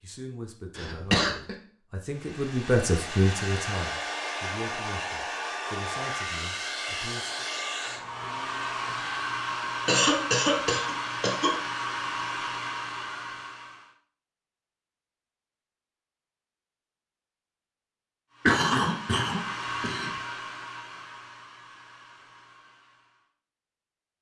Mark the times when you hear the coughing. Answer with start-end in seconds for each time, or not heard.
0.8-1.6, 9.8-11.6, 18.4-20.1.